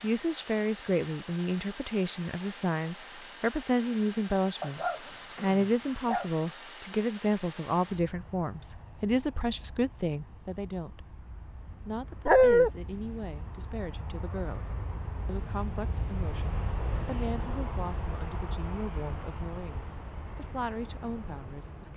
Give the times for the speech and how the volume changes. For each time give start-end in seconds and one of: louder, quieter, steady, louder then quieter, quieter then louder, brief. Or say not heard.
0.0-11.1 steady
11.8-21.9 steady.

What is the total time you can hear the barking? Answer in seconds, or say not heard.
2 s.